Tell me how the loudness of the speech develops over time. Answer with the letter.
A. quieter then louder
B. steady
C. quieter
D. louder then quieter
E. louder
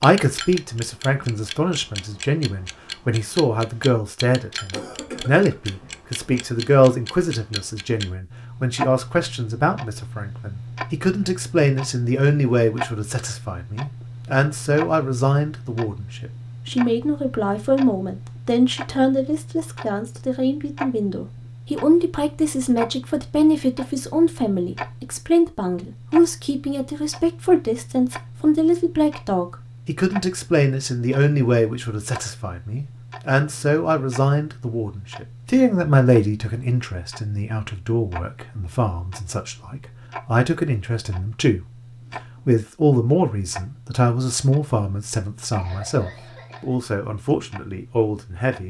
B.